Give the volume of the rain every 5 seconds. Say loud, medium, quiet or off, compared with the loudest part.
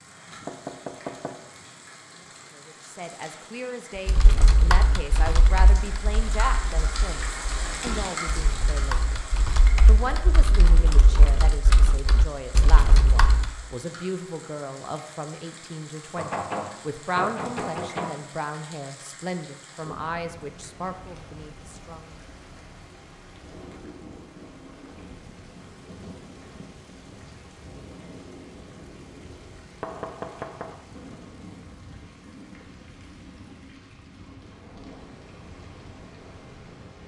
medium, loud, medium, medium, medium, medium, medium, medium.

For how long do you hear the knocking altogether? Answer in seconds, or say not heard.
4 s.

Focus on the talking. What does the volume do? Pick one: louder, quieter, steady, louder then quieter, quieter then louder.
steady.